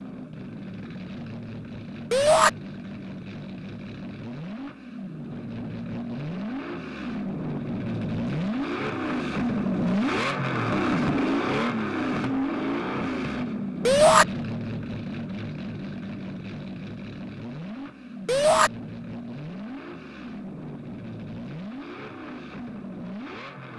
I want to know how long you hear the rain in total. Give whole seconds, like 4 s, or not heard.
not heard.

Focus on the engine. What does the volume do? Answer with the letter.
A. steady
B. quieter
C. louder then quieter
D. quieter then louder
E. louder
C.